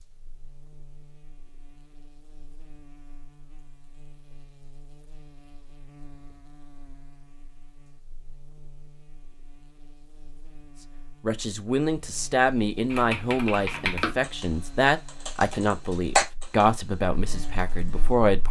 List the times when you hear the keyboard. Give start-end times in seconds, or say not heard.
12.9-16.6, 17.5-17.9.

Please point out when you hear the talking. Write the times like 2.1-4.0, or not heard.
11.2-18.4.